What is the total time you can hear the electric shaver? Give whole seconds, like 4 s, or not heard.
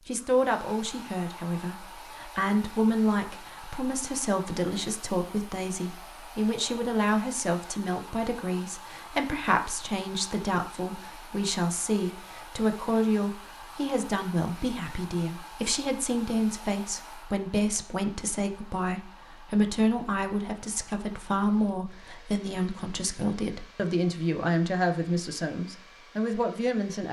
not heard.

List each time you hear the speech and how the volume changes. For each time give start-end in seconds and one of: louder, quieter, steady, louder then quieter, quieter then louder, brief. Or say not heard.
0.1-27.0 steady.